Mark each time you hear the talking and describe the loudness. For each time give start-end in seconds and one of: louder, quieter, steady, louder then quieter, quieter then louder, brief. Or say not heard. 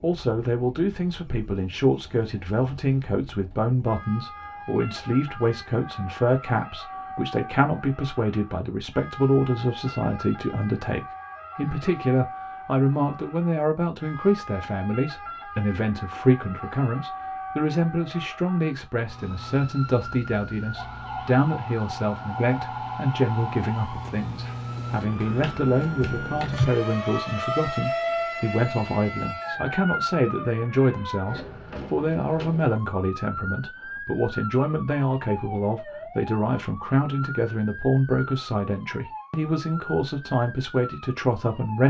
0.0-41.8 steady.